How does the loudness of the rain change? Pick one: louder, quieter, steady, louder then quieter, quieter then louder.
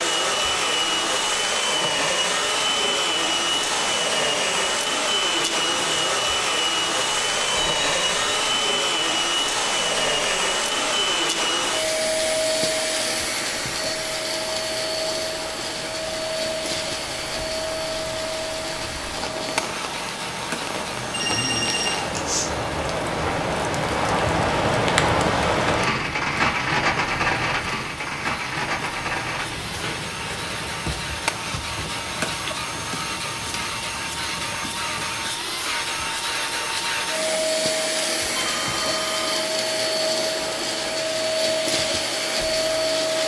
louder then quieter.